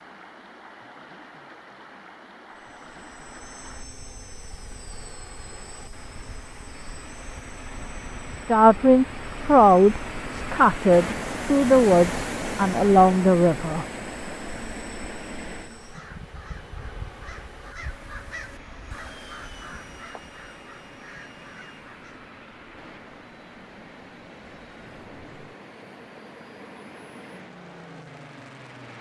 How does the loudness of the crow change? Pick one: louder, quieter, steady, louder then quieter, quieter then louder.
louder then quieter.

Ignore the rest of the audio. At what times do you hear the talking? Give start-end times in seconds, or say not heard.
8.4-13.8.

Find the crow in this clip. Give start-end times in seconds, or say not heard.
15.8-22.2.